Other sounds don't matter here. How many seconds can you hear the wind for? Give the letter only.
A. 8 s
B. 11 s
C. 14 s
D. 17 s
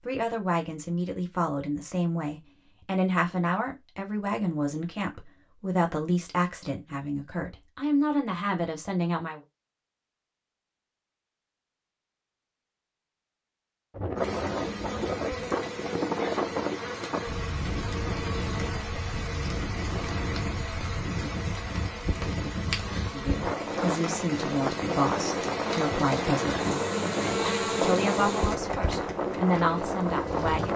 D.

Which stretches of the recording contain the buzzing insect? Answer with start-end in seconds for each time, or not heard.
14.2-30.7.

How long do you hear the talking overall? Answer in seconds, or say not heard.
17 s.